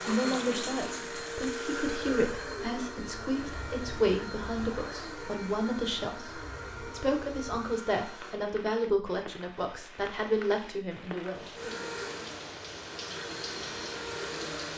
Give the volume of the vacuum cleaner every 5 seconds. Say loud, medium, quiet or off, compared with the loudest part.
loud, medium, loud.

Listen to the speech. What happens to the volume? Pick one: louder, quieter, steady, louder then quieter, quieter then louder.
steady.